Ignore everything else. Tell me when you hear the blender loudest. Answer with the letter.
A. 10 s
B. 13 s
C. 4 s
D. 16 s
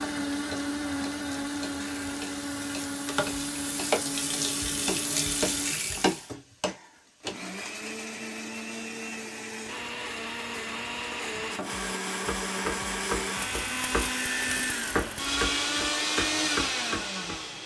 D.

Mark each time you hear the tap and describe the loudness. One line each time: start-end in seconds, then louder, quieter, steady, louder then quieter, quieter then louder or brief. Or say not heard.
0.1-6.3 louder.